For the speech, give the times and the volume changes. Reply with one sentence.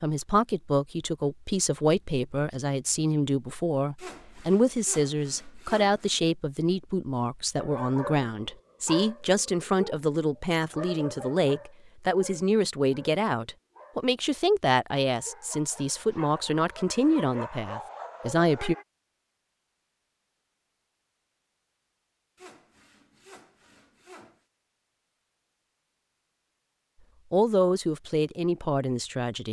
The speech can be heard from 0.0 to 18.8 s, at a steady volume; and briefly from 27.3 to 29.4 s.